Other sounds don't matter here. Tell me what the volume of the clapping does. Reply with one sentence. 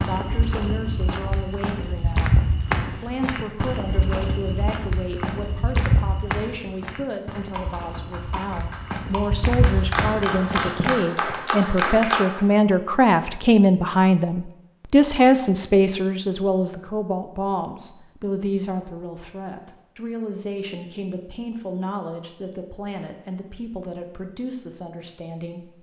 The loudness of the clapping goes up.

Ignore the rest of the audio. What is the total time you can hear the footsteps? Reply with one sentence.
You can hear the footsteps for 11 seconds altogether.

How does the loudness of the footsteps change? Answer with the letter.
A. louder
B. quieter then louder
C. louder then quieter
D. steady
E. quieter
B.